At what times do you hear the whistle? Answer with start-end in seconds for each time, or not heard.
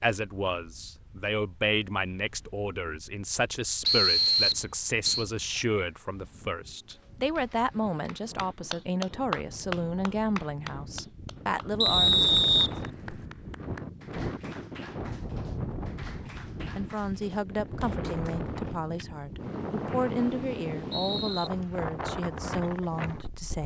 3.9-5.2, 11.8-13.2, 19.9-21.5.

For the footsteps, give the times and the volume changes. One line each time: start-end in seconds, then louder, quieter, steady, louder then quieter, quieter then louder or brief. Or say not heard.
not heard.